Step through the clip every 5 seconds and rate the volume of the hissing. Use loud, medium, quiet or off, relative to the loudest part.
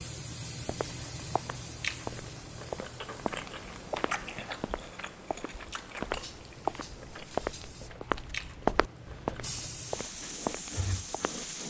medium, medium, loud.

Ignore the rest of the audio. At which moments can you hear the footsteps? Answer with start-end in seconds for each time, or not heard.
0.7-11.4.